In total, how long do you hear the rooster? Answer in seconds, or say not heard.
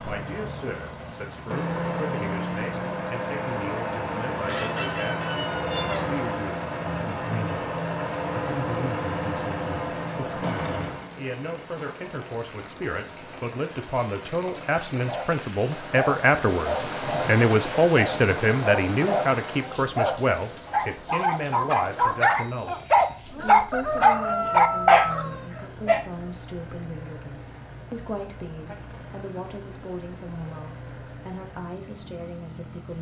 4 s.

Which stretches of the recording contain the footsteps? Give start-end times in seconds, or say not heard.
not heard.